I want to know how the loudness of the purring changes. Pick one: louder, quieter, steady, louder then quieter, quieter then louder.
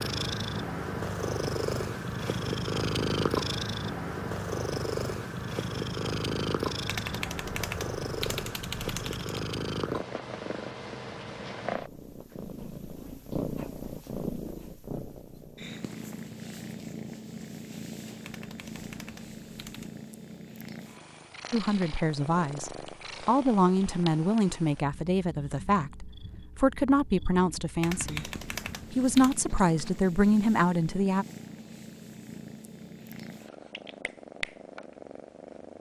quieter.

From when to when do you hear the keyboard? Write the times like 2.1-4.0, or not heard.
6.8-9.4, 18.2-19.9, 27.8-29.4.